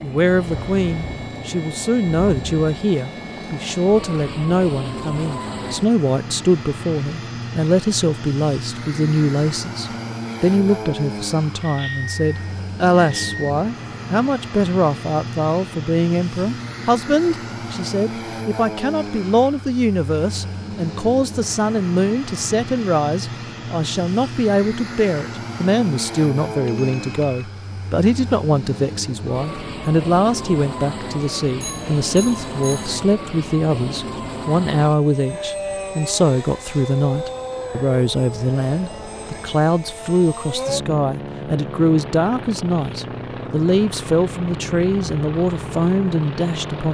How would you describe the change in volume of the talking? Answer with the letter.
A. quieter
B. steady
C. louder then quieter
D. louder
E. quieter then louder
B.